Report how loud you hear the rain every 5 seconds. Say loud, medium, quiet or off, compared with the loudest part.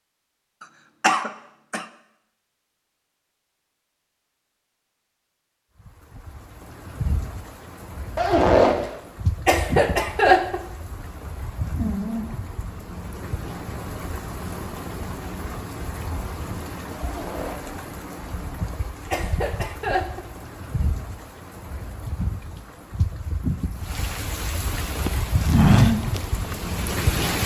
off, medium, medium, medium, medium, loud.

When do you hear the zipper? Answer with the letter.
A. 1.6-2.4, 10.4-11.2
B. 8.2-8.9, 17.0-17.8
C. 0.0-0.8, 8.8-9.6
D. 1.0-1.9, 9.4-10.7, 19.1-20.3
B.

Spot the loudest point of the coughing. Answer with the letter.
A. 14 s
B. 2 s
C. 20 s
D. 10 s
D.